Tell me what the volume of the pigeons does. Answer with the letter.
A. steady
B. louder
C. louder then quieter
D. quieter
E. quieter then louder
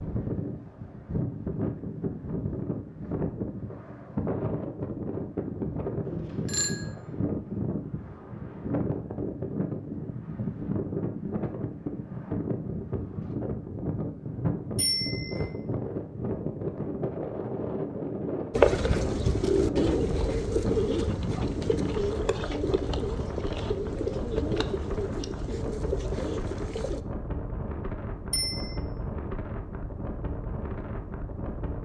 D.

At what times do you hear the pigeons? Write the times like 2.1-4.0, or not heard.
18.5-27.1.